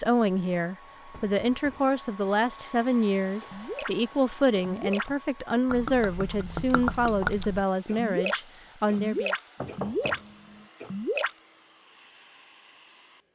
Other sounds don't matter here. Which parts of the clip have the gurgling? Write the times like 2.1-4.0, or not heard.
3.4-4.0, 4.5-10.2, 10.8-11.3.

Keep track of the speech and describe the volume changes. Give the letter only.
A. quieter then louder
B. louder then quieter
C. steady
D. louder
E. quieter
C.